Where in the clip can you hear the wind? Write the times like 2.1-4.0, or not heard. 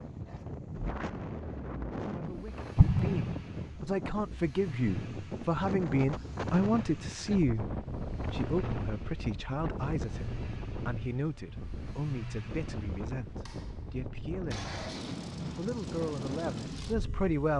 0.0-17.3.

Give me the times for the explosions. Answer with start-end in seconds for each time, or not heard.
2.8-3.4.